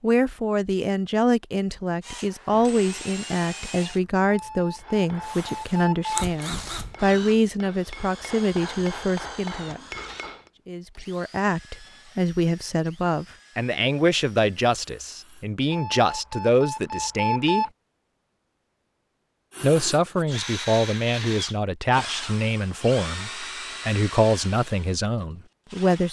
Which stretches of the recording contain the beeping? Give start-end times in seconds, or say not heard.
4.2-6.2, 15.7-17.7.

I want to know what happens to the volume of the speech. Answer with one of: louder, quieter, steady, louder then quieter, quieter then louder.
steady.